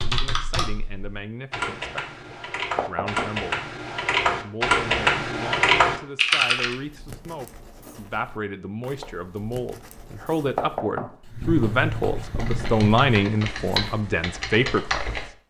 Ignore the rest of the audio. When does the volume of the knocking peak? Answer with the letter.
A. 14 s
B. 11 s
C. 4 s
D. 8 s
B.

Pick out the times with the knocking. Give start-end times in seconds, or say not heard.
2.8-3.3, 10.6-11.1.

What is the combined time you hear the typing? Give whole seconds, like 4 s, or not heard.
10 s.